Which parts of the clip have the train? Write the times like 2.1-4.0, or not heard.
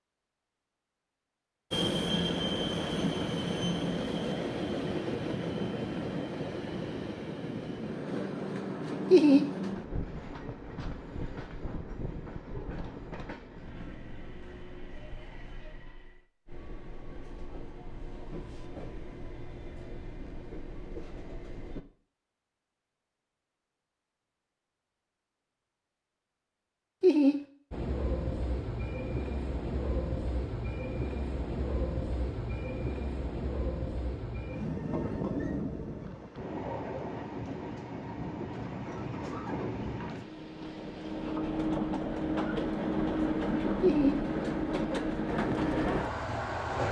1.7-21.9, 27.7-46.8.